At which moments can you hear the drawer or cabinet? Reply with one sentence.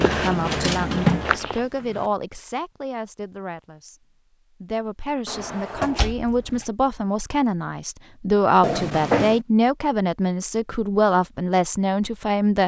The drawer or cabinet can be heard from 0.1 to 2.0 s, from 5.2 to 6.7 s and from 8.6 to 9.4 s.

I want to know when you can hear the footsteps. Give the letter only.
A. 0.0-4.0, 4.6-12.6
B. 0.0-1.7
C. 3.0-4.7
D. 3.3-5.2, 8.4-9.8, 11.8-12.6
B.